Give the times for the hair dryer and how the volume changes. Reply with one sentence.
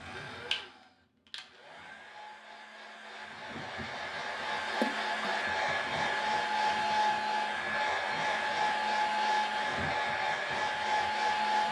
The hair dryer can be heard from 0.0 to 11.6 s, getting louder.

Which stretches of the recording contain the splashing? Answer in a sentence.
The splashing can be heard from 4.7 to 5.4 s.